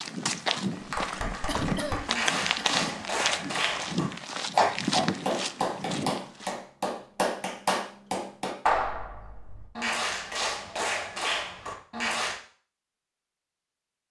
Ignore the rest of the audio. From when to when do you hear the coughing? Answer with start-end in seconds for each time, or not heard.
1.4-2.9.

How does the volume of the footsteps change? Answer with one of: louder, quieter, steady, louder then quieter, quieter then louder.
steady.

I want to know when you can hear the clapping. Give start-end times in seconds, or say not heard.
0.9-12.3.